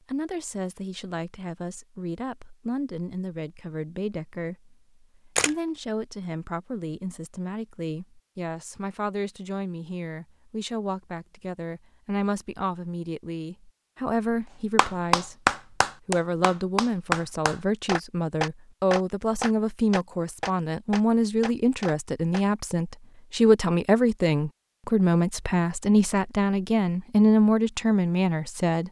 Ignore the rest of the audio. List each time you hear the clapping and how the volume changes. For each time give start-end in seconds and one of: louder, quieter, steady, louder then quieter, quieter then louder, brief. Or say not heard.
14.8-22.4 quieter.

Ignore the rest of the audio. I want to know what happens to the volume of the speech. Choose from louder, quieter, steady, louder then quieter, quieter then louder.
louder.